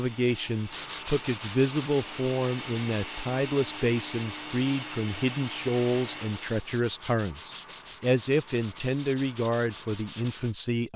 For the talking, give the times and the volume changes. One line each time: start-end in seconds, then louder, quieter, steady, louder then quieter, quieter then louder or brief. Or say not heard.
0.0-10.9 steady.